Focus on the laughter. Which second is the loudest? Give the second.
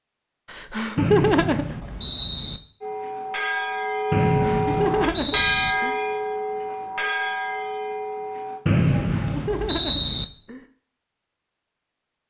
1 s.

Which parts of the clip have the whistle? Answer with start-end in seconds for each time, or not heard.
0.9-2.6, 4.1-5.8, 8.7-10.2.